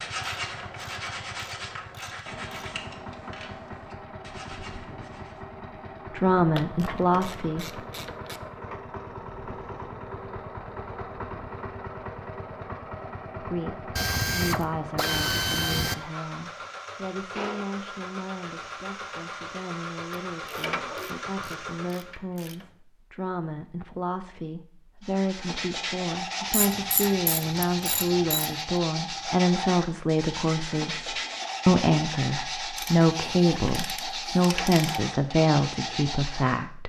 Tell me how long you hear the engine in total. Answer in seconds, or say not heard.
22 s.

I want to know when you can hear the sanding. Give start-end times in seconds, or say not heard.
0.0-5.5, 25.0-36.6.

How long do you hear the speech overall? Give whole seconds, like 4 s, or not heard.
25 s.